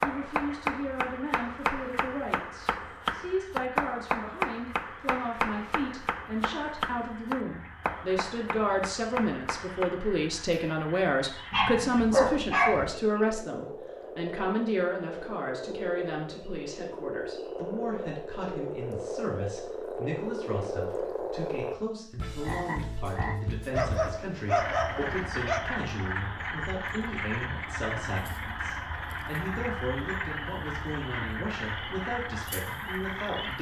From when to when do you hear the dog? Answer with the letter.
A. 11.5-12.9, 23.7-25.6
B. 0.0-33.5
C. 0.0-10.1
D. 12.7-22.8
A.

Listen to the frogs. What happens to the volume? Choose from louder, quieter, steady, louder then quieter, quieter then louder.
louder.